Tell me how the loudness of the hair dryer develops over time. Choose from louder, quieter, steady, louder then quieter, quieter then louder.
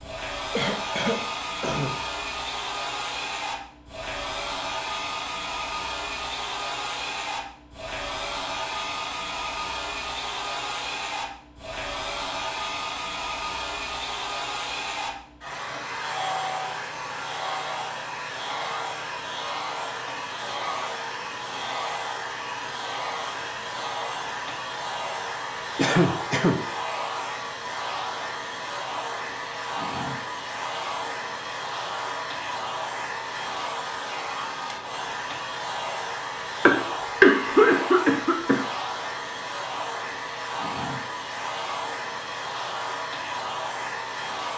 steady.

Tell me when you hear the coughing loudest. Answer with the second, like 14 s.
37 s.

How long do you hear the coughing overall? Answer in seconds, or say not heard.
4 s.